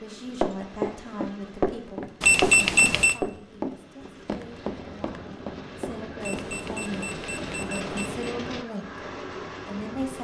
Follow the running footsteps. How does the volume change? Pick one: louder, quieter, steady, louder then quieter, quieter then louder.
quieter.